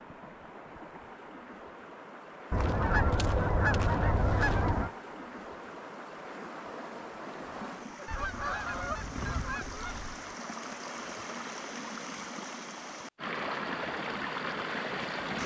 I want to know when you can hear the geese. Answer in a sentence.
You can hear the geese from 2.5 to 4.9 s and from 8.1 to 10.3 s.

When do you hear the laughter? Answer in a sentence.
The laughter can't be heard in this clip.